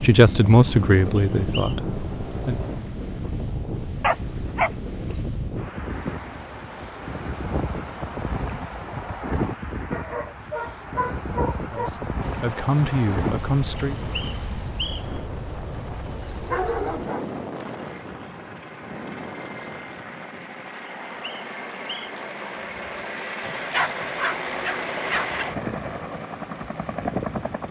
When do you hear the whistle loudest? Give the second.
15 s.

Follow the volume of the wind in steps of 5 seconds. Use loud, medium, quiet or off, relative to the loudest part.
loud, loud, loud, medium, quiet, loud.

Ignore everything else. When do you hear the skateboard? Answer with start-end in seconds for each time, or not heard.
not heard.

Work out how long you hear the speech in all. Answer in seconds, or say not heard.
5 s.